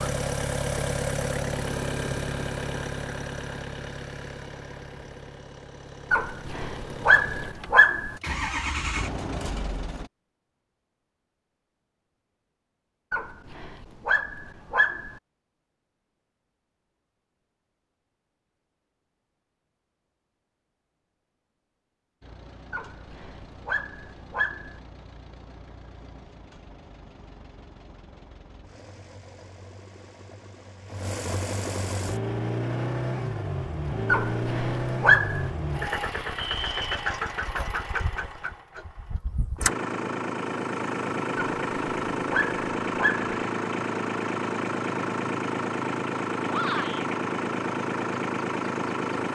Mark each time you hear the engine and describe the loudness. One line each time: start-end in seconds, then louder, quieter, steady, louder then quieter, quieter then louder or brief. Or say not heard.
0.0-10.1 quieter then louder
22.2-49.2 louder.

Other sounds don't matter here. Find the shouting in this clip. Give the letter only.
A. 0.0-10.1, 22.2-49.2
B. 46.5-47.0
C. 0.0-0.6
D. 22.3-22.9
B.